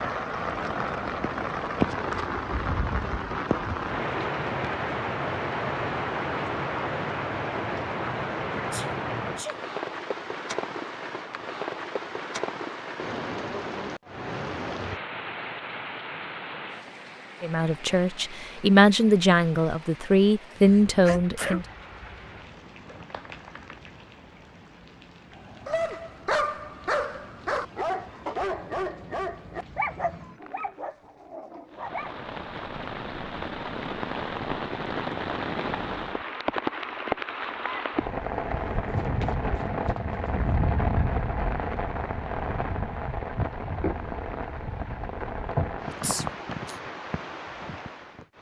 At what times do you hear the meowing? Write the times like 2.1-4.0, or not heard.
not heard.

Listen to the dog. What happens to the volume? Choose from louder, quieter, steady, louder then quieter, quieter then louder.
quieter.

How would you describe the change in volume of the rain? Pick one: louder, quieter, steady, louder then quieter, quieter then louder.
quieter then louder.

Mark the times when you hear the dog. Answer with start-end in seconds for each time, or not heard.
25.6-32.2.